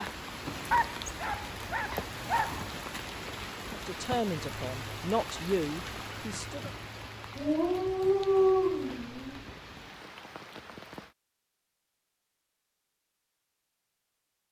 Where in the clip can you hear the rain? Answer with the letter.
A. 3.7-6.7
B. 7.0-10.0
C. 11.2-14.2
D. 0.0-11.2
D.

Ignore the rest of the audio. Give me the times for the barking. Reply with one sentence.
You can hear the barking from 0.7 to 2.6 s and from 7.3 to 9.4 s.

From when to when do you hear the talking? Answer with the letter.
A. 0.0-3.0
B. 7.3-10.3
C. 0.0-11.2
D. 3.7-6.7
D.